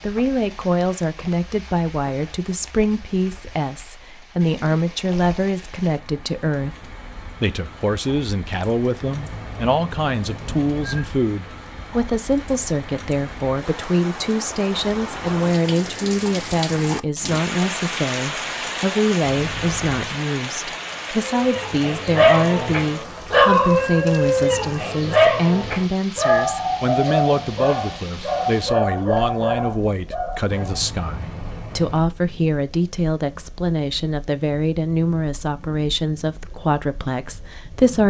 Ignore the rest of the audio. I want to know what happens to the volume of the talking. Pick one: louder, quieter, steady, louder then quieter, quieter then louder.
steady.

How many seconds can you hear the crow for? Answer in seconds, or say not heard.
not heard.